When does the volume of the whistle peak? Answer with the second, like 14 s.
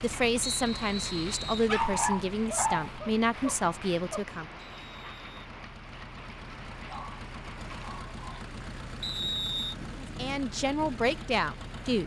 9 s.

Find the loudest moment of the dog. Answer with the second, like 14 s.
2 s.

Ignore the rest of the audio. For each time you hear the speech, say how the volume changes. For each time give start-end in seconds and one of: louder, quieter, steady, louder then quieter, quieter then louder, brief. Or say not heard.
0.0-4.5 steady
10.0-12.0 brief.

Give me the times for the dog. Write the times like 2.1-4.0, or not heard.
1.6-4.2, 6.8-8.6.